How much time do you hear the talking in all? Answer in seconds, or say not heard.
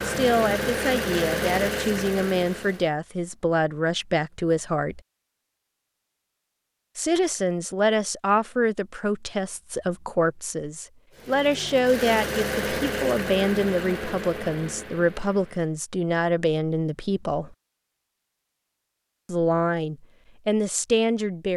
18 s.